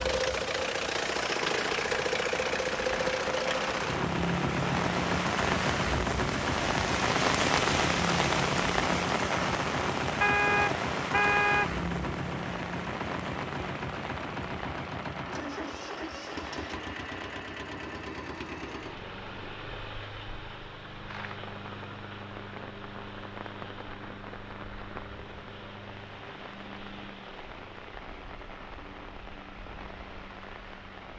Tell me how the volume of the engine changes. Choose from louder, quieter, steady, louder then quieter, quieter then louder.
quieter.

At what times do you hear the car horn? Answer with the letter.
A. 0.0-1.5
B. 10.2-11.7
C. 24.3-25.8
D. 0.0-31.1
B.